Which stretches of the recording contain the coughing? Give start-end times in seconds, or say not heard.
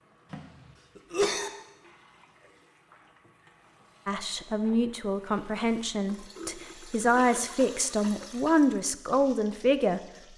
0.3-1.5, 7.2-8.7.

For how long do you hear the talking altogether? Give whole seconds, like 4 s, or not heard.
6 s.